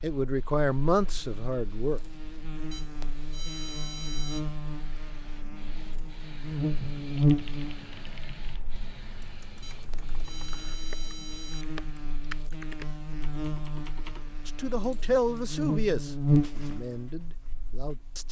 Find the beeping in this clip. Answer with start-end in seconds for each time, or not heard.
2.7-4.5, 9.6-11.7.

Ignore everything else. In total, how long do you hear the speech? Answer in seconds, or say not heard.
6 s.